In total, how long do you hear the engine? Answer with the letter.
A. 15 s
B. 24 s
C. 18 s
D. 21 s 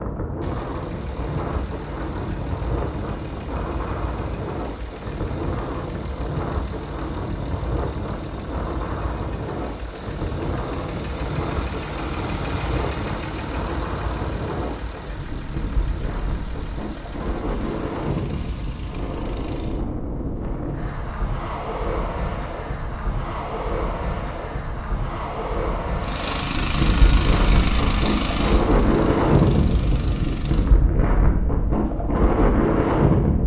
B.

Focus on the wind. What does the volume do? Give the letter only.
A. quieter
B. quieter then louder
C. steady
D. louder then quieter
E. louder
E.